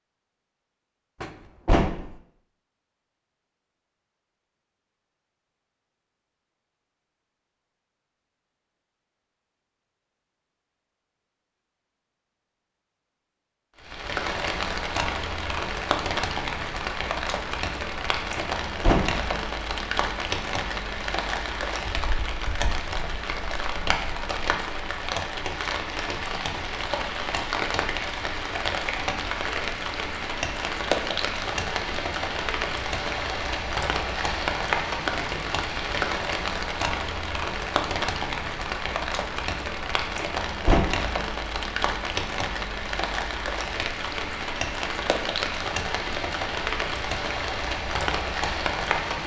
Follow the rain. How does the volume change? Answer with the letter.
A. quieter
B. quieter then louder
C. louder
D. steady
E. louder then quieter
D.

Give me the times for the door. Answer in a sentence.
You can hear the door from 1.2 to 2.1 s, from 18.4 to 19.2 s and from 40.1 to 41.0 s.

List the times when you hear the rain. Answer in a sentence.
You can hear the rain from 13.8 to 49.2 s.